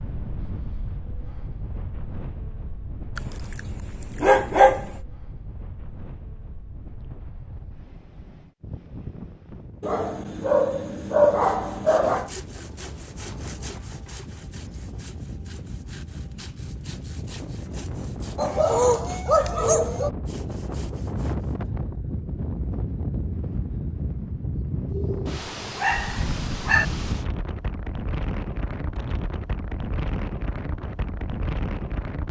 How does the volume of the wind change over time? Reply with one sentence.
The volume of the wind goes up.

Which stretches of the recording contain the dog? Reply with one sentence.
You can hear the dog from 3.1 to 4.8 s, from 9.8 to 12.3 s, from 18.4 to 20.1 s and from 24.9 to 26.9 s.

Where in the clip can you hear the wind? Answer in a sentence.
You can hear the wind from 0.0 to 32.2 s.